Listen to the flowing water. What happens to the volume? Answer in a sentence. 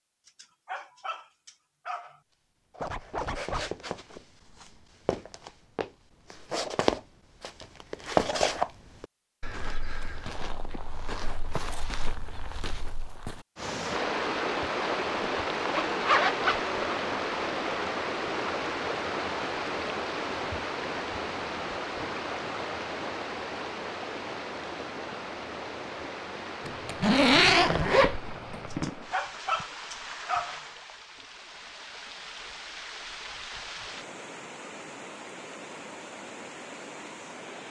The loudness of the flowing water goes down.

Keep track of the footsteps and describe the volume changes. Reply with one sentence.
The volume of the footsteps goes up, then down.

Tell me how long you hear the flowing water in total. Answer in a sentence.
You can hear the flowing water for 24 seconds altogether.